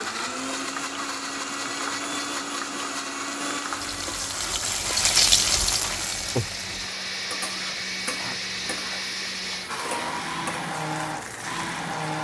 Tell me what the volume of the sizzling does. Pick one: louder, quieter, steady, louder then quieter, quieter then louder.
louder then quieter.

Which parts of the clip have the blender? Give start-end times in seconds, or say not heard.
0.0-12.1.